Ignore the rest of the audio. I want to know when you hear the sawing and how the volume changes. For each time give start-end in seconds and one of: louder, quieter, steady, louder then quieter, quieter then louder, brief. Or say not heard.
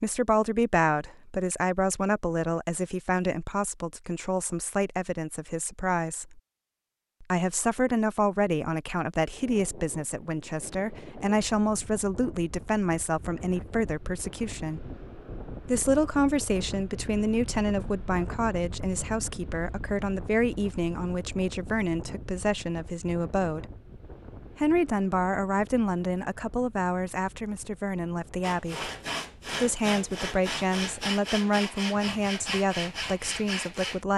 28.4-34.0 steady.